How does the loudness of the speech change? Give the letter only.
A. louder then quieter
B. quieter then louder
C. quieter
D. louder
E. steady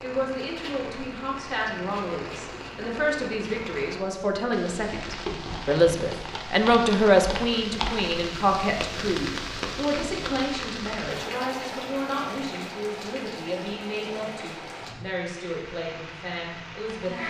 A.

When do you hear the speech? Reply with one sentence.
The speech can be heard from 0.0 to 17.2 s.